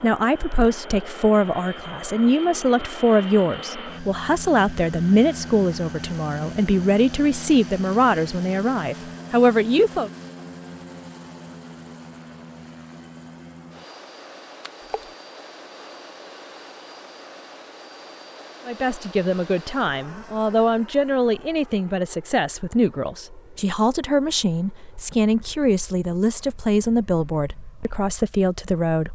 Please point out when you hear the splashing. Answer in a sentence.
You can hear the splashing from 14.6 to 15.1 s.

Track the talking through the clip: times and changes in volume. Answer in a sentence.
The talking can be heard from 0.0 to 10.1 s, at a steady volume; and from 18.6 to 29.1 s, at a steady volume.